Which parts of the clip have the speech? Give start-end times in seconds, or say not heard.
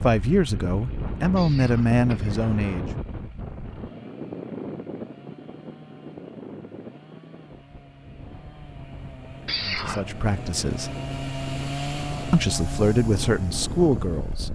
0.0-2.9, 9.7-10.9, 12.3-14.5.